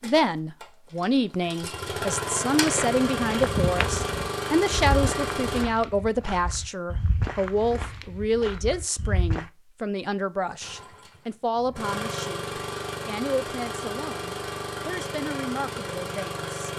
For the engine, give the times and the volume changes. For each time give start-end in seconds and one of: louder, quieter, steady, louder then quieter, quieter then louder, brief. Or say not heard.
0.0-5.7 louder
10.6-16.7 steady.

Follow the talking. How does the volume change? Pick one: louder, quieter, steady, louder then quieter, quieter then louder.
quieter.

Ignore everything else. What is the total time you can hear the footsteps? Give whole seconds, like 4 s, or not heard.
7 s.